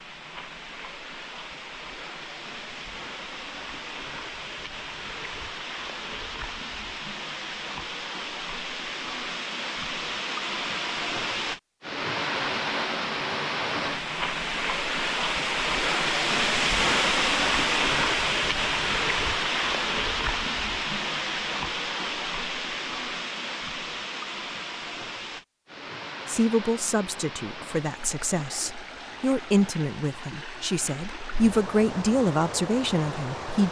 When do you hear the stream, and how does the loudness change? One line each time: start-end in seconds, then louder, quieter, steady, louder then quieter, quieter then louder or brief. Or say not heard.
0.0-33.6 louder then quieter.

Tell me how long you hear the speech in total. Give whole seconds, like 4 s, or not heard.
7 s.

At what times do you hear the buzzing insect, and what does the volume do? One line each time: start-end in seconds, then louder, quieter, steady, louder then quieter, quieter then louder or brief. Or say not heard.
not heard.